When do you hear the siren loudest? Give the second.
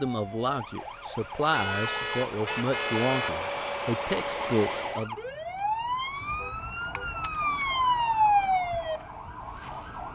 8 s.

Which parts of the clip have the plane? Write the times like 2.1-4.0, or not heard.
0.1-5.1.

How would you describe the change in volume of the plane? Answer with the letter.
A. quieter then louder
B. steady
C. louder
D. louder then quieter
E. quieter
C.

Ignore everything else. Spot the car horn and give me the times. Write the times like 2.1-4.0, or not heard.
1.5-3.3, 6.2-7.2.